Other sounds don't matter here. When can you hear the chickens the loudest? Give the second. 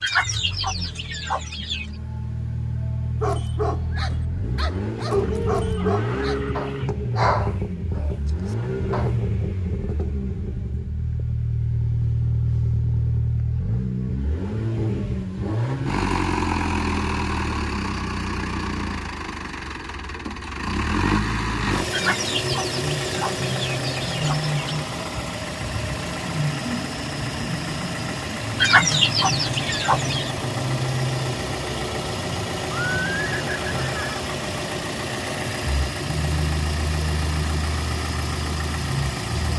29 s.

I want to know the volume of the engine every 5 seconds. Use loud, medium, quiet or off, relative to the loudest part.
medium, loud, loud, loud, loud, loud, loud, loud.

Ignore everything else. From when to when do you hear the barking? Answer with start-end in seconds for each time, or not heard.
3.2-9.2.